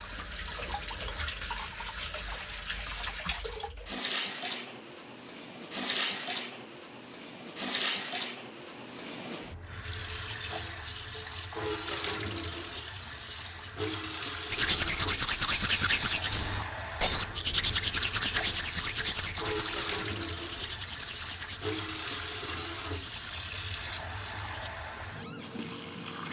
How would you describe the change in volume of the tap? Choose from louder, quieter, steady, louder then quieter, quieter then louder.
steady.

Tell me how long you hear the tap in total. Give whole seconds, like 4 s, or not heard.
26 s.